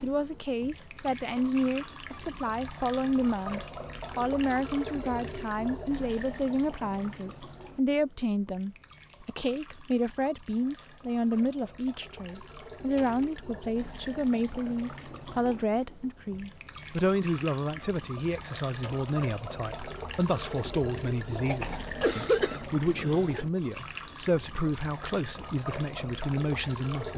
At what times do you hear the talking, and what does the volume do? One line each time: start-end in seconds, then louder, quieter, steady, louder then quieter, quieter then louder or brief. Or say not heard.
0.0-27.1 steady.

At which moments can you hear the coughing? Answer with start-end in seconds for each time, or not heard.
21.4-23.4.